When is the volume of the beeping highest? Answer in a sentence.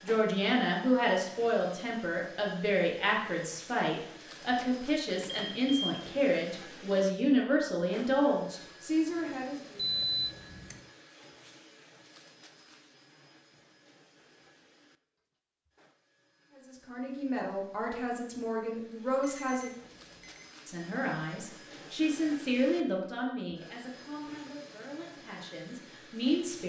The volume of the beeping peaks at 10 seconds.